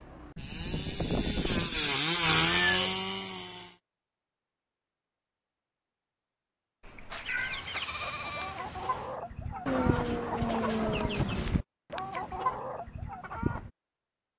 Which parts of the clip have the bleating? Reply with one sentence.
The bleating can be heard from 0.3 to 1.9 s and from 7.3 to 9.2 s.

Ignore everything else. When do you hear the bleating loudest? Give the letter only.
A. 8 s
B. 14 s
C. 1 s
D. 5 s
C.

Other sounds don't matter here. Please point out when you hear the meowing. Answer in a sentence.
The meowing can be heard from 2.5 to 3.0 s, from 6.8 to 7.7 s and from 9.7 to 11.6 s.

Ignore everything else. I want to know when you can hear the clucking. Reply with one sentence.
You can hear the clucking from 7.1 to 13.7 s.